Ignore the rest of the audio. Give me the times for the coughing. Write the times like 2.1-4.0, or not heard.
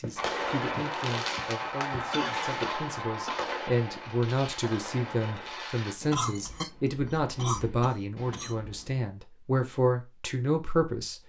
2.1-3.5, 6.1-8.6.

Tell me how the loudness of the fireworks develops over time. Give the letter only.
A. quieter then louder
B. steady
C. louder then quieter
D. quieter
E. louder
D.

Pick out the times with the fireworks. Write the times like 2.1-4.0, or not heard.
0.1-9.1.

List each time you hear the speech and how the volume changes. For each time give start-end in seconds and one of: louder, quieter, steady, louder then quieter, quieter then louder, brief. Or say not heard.
0.0-11.2 louder.